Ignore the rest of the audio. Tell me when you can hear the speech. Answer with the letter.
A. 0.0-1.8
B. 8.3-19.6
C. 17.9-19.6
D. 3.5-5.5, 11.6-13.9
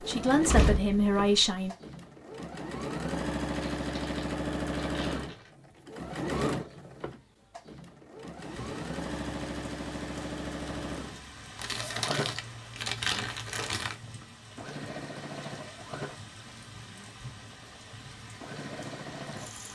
A.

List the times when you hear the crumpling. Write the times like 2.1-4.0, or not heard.
3.5-5.5, 11.6-13.9.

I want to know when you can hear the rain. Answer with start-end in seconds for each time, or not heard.
8.3-19.6.